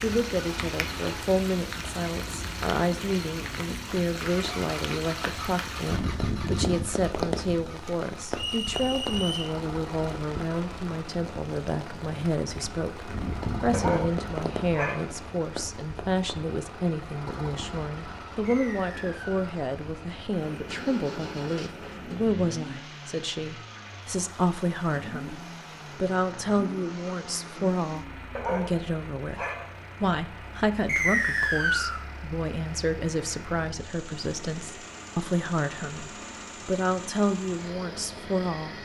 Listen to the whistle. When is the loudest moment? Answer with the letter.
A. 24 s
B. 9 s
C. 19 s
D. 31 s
D.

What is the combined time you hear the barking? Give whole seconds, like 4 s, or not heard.
3 s.